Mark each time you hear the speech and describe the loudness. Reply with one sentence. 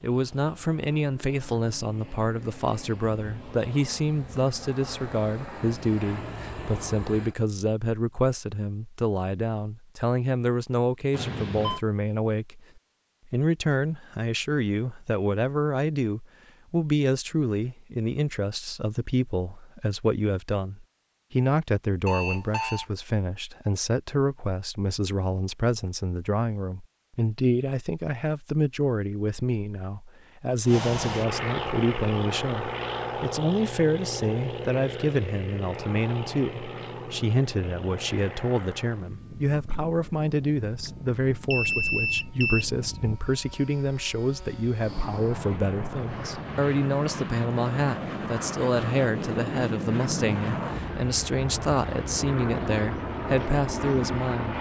You can hear the speech from 0.0 to 12.7 s, at a steady volume; and from 13.2 to 54.5 s, at a steady volume.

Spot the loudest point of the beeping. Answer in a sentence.
The loudest moment of the beeping is at 42 seconds.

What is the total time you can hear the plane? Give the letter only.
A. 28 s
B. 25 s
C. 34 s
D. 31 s
D.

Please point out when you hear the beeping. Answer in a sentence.
You can hear the beeping from 11.1 to 11.8 s, from 22.1 to 22.9 s and from 40.9 to 42.6 s.